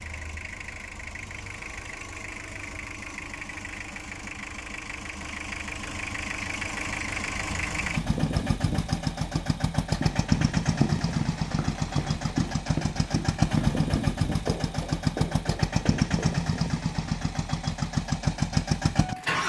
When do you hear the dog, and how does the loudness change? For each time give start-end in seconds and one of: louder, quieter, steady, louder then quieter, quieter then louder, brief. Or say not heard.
not heard.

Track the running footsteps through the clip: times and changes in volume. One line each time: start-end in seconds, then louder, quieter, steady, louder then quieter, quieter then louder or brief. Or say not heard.
9.9-16.6 quieter.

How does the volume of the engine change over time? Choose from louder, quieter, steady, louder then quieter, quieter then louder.
louder.